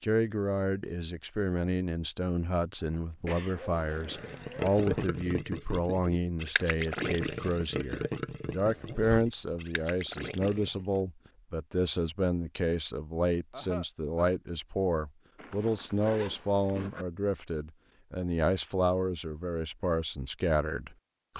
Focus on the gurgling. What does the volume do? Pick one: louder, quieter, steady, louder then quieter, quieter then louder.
quieter.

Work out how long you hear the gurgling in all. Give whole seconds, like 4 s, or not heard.
7 s.